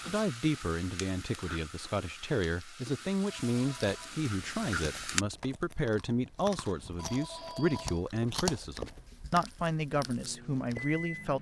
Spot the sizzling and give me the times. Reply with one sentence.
You can hear the sizzling from 0.0 to 5.2 s.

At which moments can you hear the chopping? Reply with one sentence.
You can't hear the chopping here.